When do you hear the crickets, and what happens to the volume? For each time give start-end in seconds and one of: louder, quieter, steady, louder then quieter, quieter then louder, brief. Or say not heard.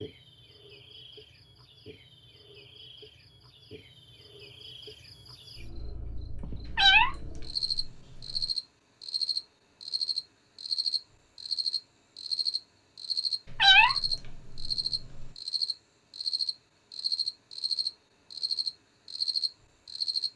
0.0-20.3 louder.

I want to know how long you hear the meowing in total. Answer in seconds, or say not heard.
4 s.